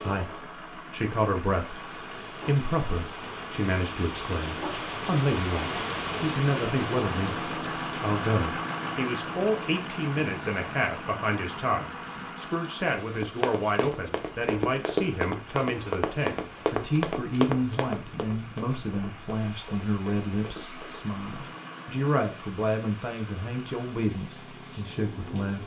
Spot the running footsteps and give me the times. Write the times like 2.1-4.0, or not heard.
13.2-21.1.